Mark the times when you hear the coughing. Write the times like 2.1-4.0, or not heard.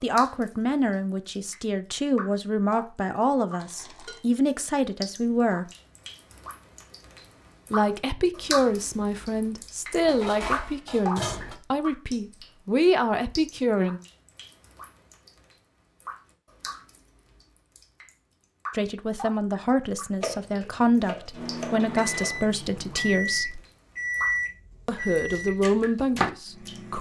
not heard.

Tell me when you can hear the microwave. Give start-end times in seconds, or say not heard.
21.3-26.9.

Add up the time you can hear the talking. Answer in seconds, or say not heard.
19 s.